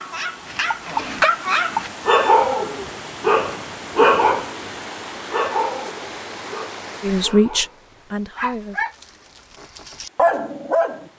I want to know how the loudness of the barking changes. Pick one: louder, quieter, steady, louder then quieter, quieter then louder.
quieter then louder.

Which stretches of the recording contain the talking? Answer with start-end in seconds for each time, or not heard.
7.0-8.8.